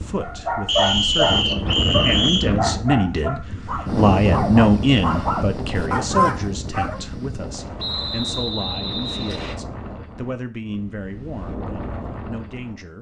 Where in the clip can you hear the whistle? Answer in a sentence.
You can hear the whistle from 0.7 to 2.5 s and from 7.8 to 9.6 s.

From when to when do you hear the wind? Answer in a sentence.
The wind can be heard from 0.0 to 12.9 s.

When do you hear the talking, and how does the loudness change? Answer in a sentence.
You can hear the talking from 0.0 to 12.9 s, getting louder then quieter.